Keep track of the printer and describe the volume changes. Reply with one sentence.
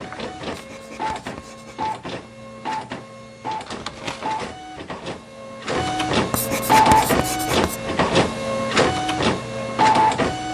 The volume of the printer goes up.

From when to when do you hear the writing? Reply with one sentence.
The writing can be heard from 0.5 to 1.9 s and from 6.3 to 7.8 s.